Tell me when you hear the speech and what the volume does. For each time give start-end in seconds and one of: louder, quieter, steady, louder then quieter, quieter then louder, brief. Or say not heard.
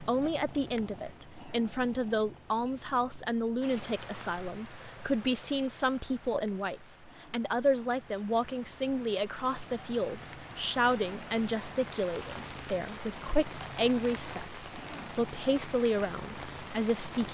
0.0-17.2 steady.